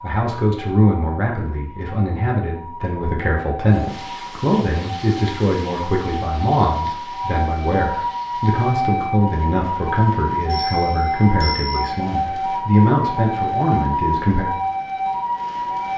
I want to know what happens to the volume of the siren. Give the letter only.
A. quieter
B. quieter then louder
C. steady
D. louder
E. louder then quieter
D.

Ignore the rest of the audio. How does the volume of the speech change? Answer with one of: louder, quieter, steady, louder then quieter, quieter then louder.
steady.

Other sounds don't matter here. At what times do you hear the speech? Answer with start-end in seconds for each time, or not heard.
0.0-14.5.